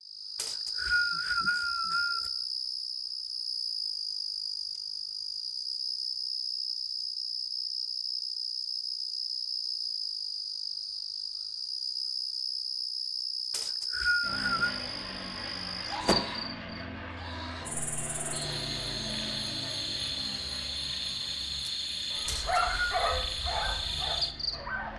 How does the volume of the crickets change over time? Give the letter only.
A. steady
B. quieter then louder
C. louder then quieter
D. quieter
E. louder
A.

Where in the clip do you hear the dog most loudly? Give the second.
23 s.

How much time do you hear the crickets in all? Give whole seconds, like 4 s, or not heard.
25 s.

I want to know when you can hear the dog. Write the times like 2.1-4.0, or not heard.
22.1-24.9.